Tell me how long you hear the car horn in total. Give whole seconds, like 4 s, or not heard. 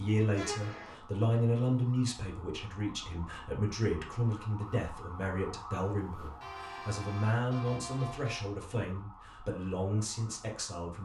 3 s.